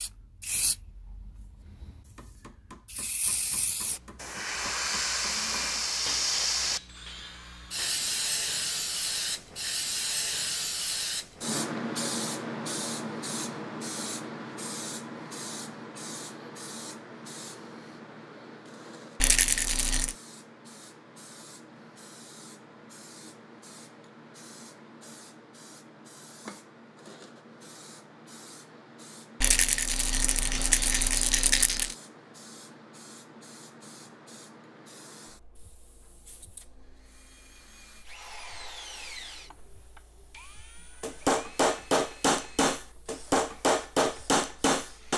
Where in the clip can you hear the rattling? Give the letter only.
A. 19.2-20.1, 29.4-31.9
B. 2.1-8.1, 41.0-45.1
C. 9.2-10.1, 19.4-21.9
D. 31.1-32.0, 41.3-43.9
A.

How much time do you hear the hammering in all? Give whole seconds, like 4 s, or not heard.
10 s.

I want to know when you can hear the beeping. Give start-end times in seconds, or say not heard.
not heard.